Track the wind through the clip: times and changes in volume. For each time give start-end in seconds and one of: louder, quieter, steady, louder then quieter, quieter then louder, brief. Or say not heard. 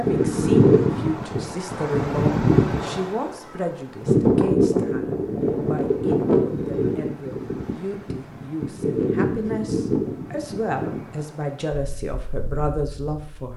0.0-13.4 quieter.